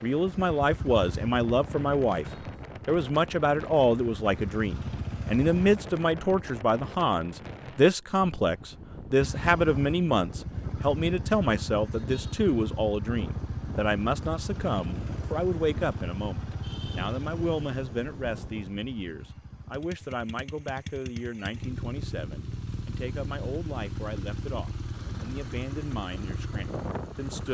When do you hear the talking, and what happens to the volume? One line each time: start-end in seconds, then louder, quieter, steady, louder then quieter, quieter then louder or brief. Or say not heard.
0.0-2.2 brief
2.9-27.5 quieter.